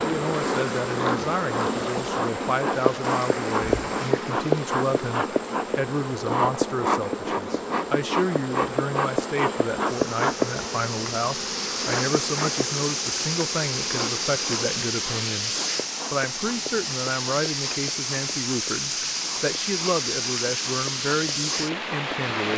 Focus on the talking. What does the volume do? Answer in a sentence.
The loudness of the talking stays about the same.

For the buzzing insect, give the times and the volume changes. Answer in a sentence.
The buzzing insect can be heard from 0.0 to 22.3 s, getting quieter.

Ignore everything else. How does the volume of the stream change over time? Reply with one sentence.
The volume of the stream goes down, then up.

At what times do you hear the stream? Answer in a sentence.
The stream can be heard from 0.0 to 22.5 s.